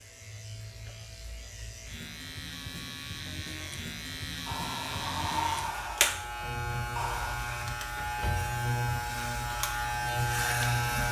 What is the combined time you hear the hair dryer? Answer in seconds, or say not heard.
3 s.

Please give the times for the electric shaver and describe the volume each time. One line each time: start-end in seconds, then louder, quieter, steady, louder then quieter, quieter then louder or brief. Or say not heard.
0.0-11.0 louder.